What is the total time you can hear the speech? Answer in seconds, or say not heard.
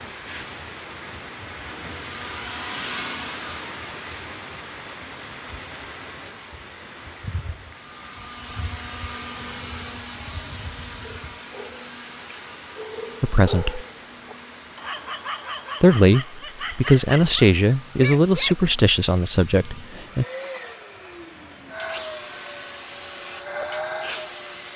5 s.